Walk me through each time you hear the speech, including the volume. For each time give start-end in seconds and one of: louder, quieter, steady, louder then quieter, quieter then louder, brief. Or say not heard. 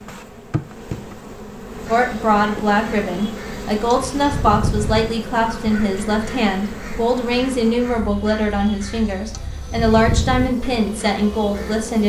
1.9-12.0 steady.